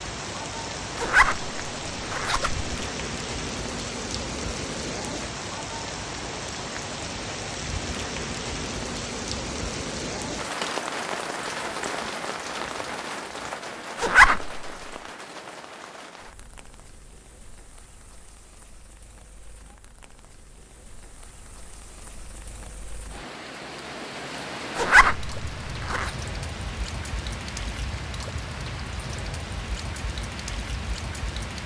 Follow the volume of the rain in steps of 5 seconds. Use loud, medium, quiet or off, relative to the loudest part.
loud, loud, loud, quiet, medium, loud, loud.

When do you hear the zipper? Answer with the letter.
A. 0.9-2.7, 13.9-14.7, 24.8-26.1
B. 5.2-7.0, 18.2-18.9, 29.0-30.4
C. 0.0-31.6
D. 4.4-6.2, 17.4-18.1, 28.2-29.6
A.